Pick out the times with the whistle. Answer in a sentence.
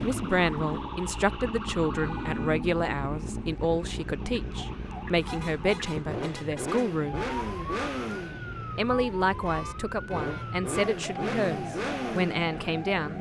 The whistle can't be heard in this clip.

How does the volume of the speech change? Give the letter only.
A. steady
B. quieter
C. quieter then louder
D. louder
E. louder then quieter
A.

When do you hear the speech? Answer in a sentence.
The speech can be heard from 0.0 to 7.2 s and from 8.8 to 13.1 s.